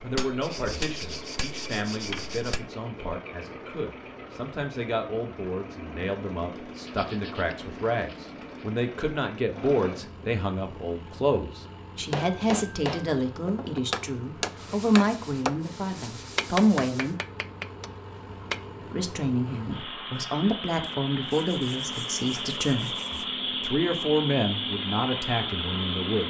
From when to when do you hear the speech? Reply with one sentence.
The speech can be heard from 0.0 to 17.1 s and from 18.9 to 26.2 s.